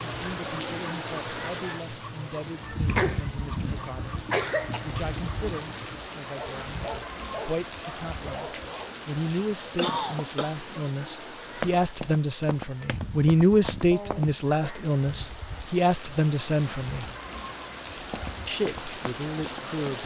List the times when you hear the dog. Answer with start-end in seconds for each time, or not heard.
0.0-9.1.